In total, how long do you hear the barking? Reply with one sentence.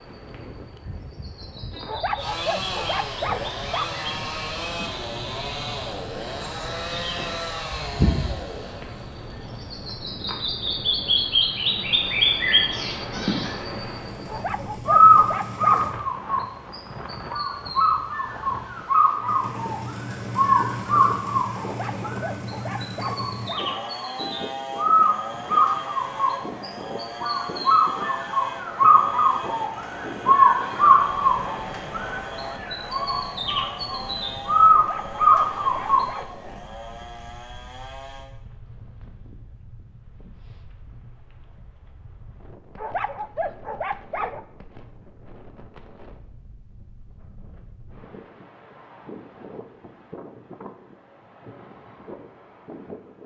The barking can be heard for 9 seconds in total.